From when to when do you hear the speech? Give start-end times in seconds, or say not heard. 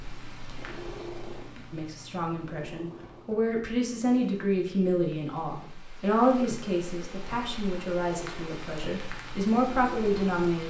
1.7-10.6.